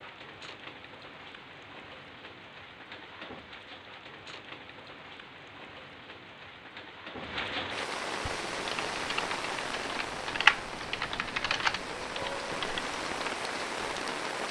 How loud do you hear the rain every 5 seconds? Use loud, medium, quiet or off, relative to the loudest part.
medium, loud, loud.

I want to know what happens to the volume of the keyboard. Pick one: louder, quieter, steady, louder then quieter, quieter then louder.
louder then quieter.